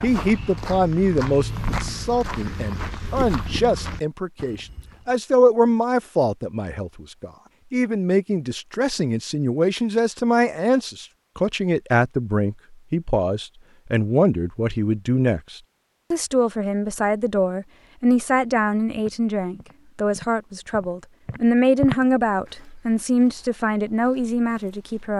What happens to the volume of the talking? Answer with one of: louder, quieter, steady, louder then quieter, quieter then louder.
steady.